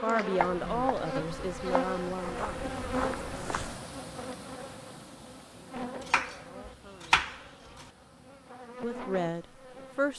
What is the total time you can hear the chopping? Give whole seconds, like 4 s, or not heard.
3 s.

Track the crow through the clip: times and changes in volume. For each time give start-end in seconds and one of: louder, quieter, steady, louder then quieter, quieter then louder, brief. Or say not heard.
not heard.